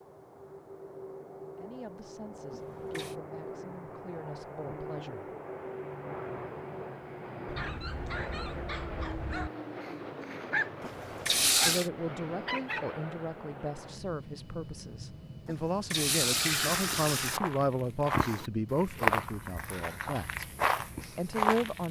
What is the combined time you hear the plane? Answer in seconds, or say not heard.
22 s.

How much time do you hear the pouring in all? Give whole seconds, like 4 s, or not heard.
4 s.